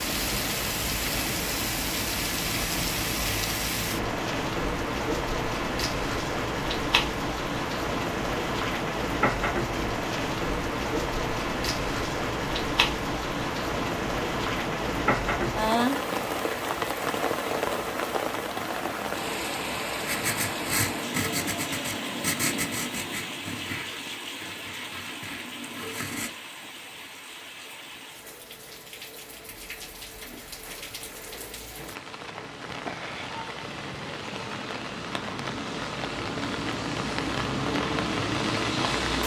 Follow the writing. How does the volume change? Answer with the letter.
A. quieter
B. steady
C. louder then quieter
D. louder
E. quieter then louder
A.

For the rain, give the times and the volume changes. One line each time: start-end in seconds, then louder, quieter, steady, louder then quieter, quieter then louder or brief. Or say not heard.
0.0-39.2 quieter then louder.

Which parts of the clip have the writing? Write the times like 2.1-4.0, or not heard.
20.1-26.4.